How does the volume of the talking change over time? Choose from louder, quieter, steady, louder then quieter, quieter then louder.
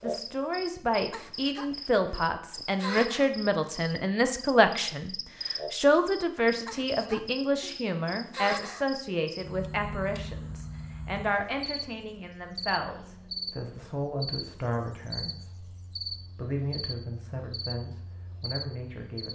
quieter.